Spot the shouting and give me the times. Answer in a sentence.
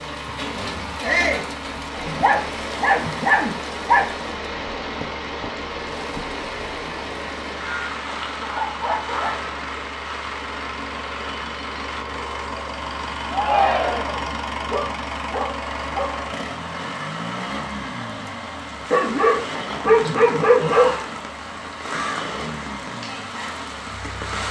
The shouting can be heard from 1.0 to 1.5 s, from 13.3 to 14.2 s and from 20.6 to 21.1 s.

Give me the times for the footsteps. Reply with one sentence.
The footsteps can't be heard in this clip.